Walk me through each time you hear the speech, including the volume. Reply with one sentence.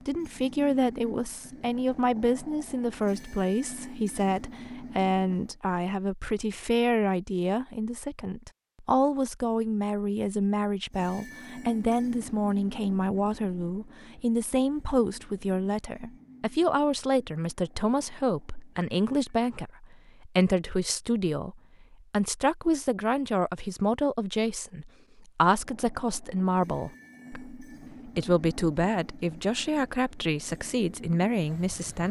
You can hear the speech from 0.1 to 32.0 s, at a steady volume.